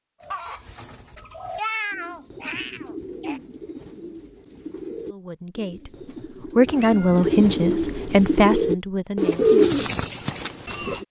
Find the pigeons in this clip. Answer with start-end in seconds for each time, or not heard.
0.2-11.0.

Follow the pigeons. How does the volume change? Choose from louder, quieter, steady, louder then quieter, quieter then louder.
louder.